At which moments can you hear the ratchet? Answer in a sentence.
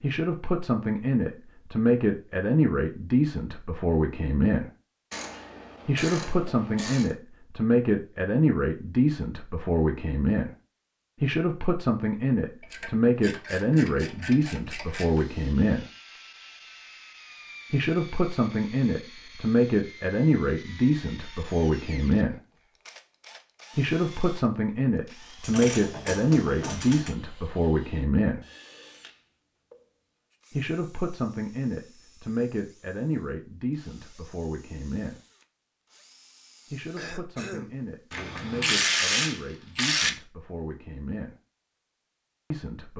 The ratchet can be heard from 5.1 to 7.2 s, from 12.6 to 15.2 s, from 25.4 to 27.1 s and from 38.1 to 40.1 s.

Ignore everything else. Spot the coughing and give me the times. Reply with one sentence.
The coughing can be heard from 37.0 to 38.9 s.